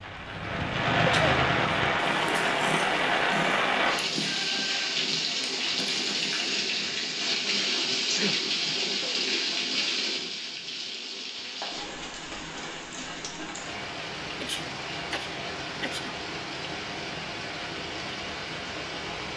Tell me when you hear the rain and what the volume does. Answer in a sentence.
You can hear the rain from 0.0 to 19.3 s, getting quieter.